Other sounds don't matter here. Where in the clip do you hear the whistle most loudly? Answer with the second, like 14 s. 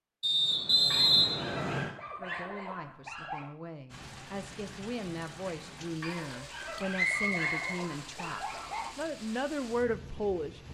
1 s.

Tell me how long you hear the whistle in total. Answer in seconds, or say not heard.
3 s.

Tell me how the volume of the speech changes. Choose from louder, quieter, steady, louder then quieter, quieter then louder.
louder.